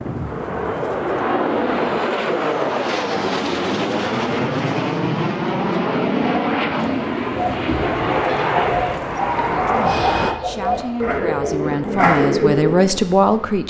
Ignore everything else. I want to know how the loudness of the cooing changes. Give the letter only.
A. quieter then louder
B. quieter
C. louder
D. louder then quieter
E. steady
C.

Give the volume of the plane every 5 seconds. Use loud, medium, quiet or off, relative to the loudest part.
loud, loud, medium.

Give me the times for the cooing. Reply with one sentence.
The cooing can be heard from 7.3 to 13.0 s.